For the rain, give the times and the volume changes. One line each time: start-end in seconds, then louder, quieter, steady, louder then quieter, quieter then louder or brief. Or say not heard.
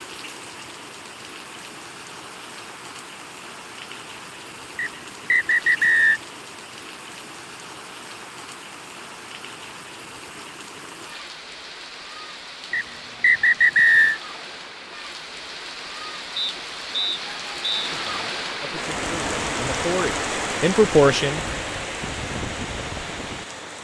0.0-23.7 louder.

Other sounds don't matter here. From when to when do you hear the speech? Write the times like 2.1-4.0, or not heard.
17.8-21.4.